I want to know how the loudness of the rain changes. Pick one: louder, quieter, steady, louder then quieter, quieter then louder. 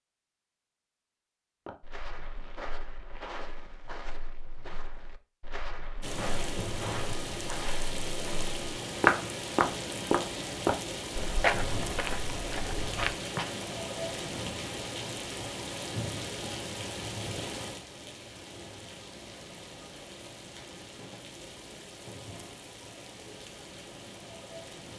quieter.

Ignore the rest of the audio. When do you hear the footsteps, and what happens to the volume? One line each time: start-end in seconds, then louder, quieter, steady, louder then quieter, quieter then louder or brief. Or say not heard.
1.6-13.5 louder then quieter.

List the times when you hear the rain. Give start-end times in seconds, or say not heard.
6.0-24.9.